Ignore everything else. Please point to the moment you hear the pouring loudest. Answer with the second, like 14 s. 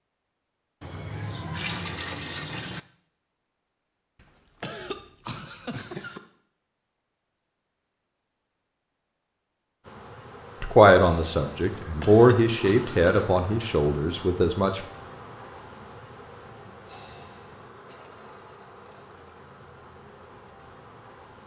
2 s.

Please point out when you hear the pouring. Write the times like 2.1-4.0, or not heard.
0.8-2.8, 17.9-19.4.